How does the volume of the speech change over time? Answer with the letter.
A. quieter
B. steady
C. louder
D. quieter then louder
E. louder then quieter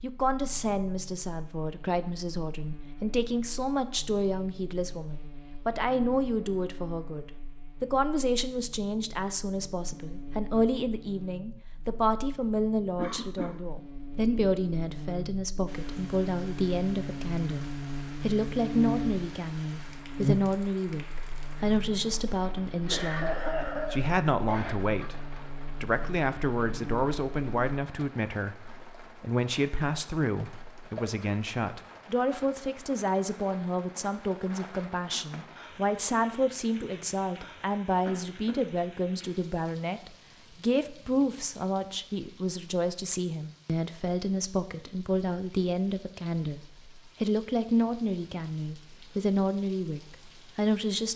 B.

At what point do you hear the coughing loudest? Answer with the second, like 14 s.
23 s.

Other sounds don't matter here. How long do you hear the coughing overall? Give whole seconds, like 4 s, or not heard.
3 s.